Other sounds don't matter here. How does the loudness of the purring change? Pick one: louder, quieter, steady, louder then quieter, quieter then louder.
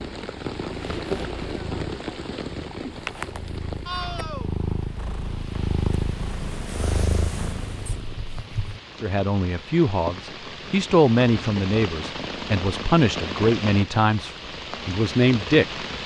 louder.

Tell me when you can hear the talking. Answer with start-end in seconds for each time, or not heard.
9.0-15.8.